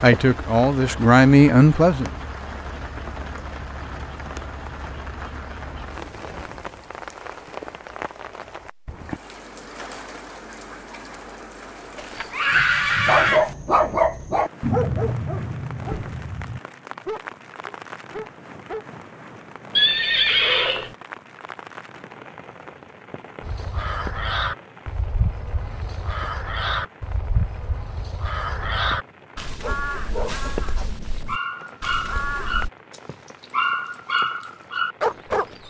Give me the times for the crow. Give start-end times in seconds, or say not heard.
23.4-32.7.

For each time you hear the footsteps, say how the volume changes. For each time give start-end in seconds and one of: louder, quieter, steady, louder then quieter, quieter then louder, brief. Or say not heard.
not heard.